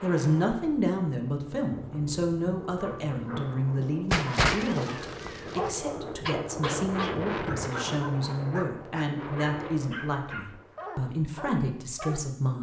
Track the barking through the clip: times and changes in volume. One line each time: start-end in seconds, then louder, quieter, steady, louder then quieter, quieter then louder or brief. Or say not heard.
2.8-12.2 quieter.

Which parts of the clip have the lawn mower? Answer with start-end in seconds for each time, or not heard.
not heard.